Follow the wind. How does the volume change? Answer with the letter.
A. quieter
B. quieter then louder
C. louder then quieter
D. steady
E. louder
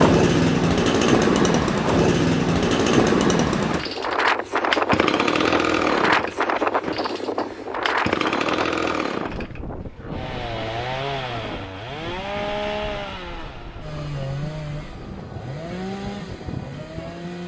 A.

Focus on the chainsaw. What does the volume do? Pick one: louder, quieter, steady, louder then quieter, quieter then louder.
quieter.